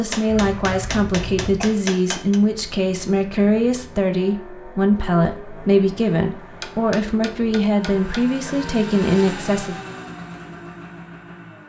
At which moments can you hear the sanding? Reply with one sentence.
You can't hear the sanding here.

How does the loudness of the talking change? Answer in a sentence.
The loudness of the talking stays about the same.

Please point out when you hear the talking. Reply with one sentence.
The talking can be heard from 0.0 to 9.8 s.